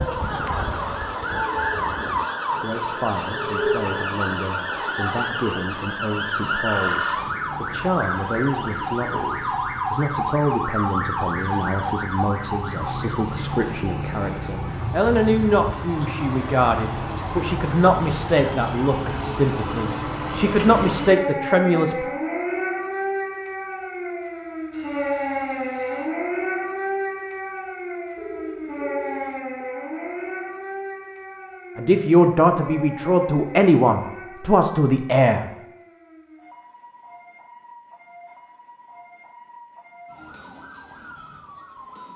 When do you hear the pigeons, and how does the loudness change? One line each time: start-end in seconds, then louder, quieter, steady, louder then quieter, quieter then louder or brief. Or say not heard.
not heard.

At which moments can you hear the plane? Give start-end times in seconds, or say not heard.
0.0-2.2.